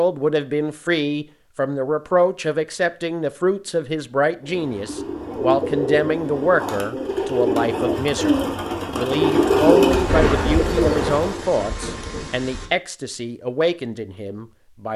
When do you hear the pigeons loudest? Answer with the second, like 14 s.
10 s.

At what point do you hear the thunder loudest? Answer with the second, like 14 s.
10 s.